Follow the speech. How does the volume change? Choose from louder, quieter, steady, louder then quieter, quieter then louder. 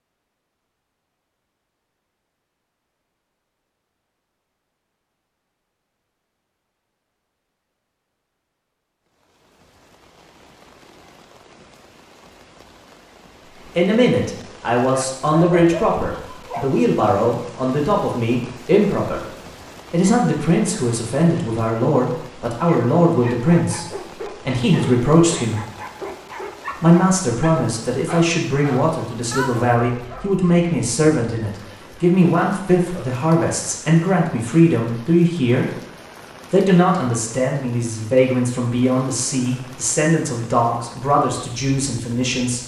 steady.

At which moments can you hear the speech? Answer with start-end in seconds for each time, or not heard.
13.7-25.6, 26.8-35.8, 36.5-42.6.